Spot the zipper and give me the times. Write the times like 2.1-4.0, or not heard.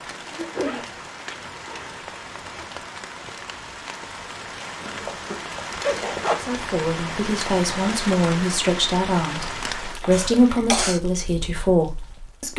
0.6-2.6, 5.0-6.5, 10.0-10.9.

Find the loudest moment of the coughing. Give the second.
11 s.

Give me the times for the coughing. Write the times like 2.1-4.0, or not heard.
0.3-0.8, 4.8-5.4, 10.1-11.0.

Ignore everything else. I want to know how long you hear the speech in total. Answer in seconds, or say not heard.
6 s.